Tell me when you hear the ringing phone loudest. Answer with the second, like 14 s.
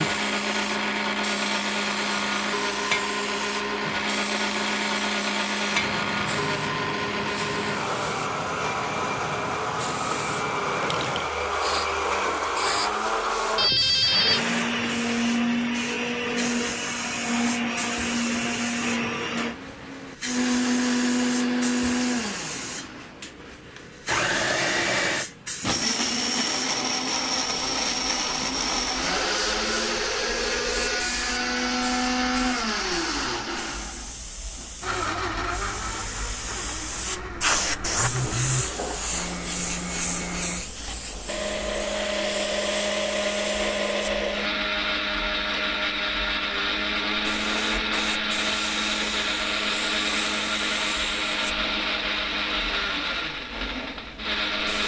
14 s.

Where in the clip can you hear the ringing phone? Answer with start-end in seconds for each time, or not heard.
13.6-14.4, 29.1-31.1, 38.0-38.7.